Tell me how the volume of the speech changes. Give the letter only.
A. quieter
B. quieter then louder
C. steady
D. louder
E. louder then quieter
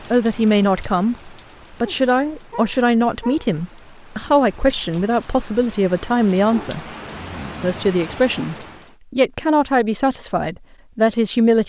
C.